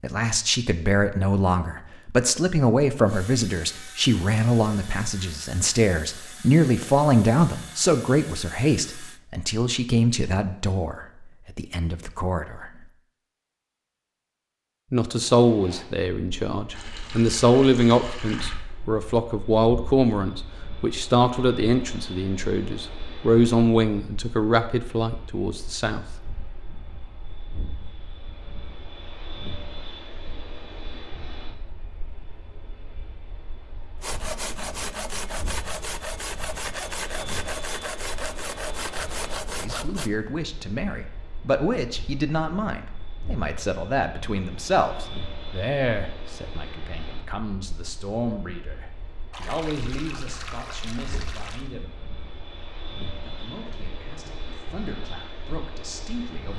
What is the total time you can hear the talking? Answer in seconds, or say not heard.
40 s.